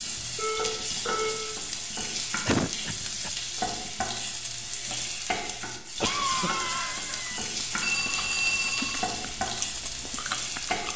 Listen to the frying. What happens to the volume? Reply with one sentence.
The volume of the frying stays about the same.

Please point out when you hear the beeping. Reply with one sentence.
The beeping can be heard from 0.3 to 1.4 s and from 7.8 to 9.1 s.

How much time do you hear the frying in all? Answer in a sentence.
The frying can be heard for 11 seconds in total.